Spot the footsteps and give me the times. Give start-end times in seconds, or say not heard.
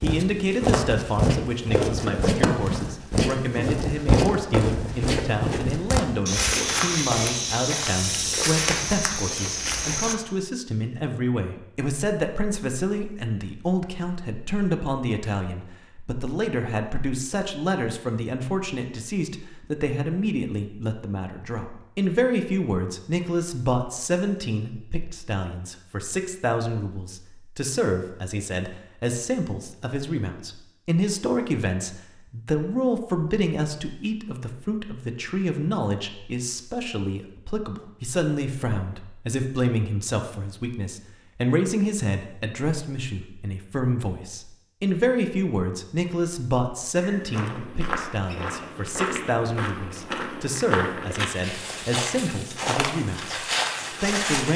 0.0-10.2, 47.0-54.5.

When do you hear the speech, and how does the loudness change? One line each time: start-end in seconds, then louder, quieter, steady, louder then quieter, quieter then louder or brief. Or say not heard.
0.0-54.5 steady.